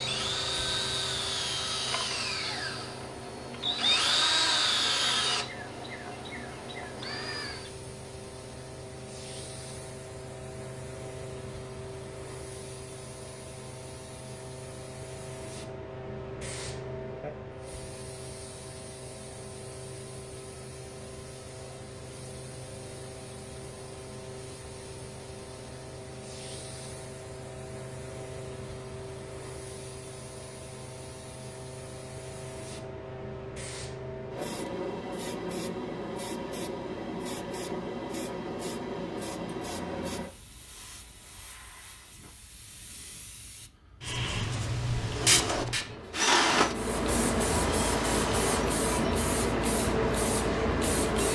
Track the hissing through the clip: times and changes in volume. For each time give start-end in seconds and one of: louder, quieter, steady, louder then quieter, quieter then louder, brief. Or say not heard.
0.0-51.3 louder.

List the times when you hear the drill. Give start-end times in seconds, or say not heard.
0.0-7.7, 45.0-48.8.